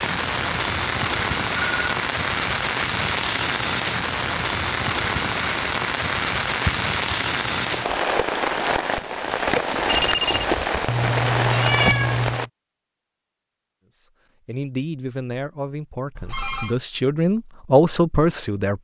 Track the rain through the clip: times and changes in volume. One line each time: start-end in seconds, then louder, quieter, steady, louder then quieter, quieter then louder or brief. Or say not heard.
0.0-12.5 steady.